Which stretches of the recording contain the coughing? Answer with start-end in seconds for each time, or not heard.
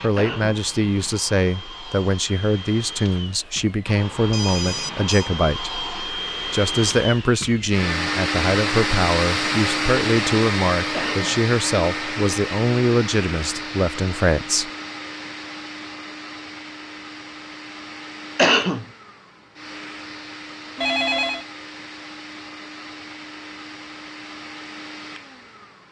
0.1-0.6, 10.9-11.4, 18.4-18.9.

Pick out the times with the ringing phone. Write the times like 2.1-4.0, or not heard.
3.2-5.3, 20.8-21.4.